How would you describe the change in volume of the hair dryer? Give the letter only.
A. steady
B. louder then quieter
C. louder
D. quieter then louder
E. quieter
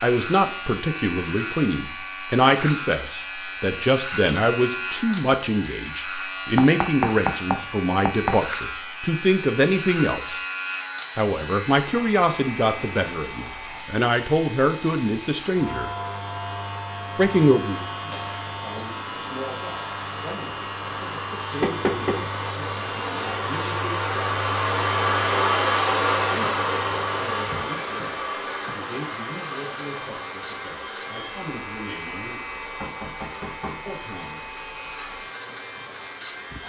B.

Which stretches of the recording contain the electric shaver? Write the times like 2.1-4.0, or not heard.
0.0-36.6.